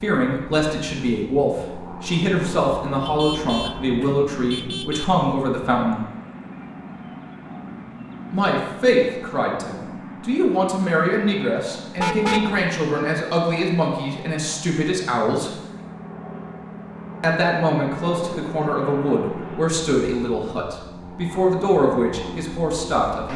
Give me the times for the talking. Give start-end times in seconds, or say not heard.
0.0-6.0, 8.3-15.5, 17.2-23.3.